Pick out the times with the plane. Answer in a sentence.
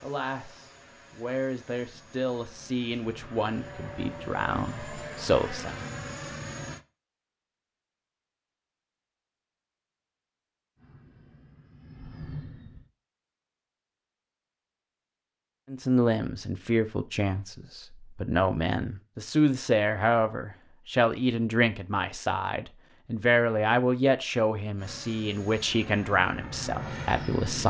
You can hear the plane from 0.0 to 6.8 s, from 10.8 to 12.9 s and from 24.8 to 27.6 s.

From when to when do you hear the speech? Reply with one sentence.
You can hear the speech from 0.0 to 5.8 s and from 15.7 to 27.6 s.